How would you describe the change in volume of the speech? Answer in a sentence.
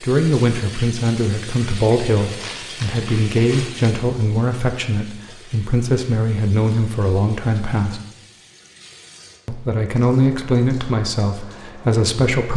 The loudness of the speech stays about the same.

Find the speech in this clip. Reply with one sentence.
You can hear the speech from 0.0 to 8.0 s and from 9.4 to 12.5 s.